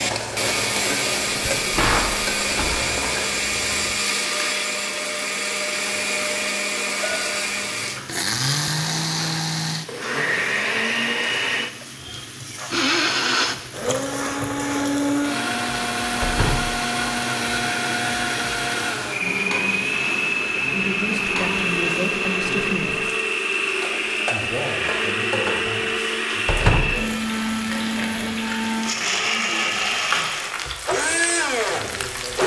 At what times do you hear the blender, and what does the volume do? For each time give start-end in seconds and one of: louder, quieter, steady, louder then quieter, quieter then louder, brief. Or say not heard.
0.0-32.4 steady.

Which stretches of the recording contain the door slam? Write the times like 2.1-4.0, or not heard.
1.6-2.9, 16.2-16.8, 26.4-27.1.